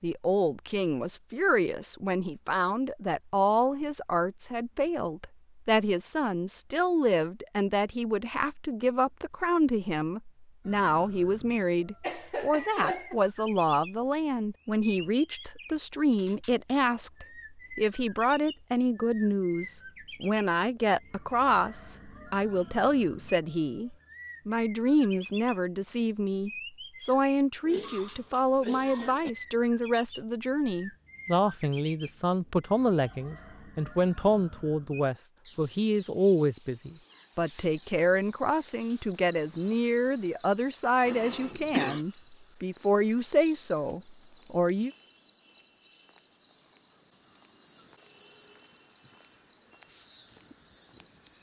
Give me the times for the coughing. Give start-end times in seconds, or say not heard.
12.0-13.2, 27.6-29.3, 41.0-42.0.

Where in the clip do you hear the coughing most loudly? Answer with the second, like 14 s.
42 s.